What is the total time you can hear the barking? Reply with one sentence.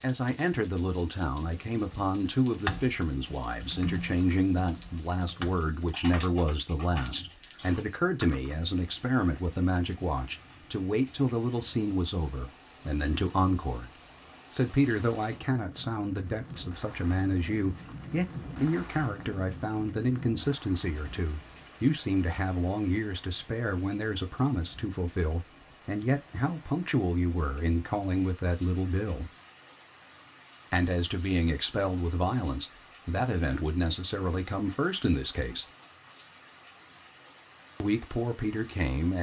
You can't hear the barking here.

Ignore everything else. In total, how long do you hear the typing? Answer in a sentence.
The typing can be heard for 7 seconds in total.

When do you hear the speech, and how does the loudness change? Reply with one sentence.
You can hear the speech from 0.0 to 13.9 s, at a steady volume; from 14.5 to 29.3 s, at a steady volume; from 30.7 to 35.6 s, at a steady volume; and briefly from 37.8 to 39.1 s.